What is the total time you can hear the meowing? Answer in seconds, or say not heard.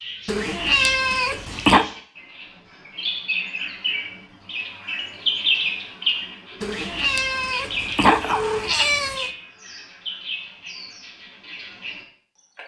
4 s.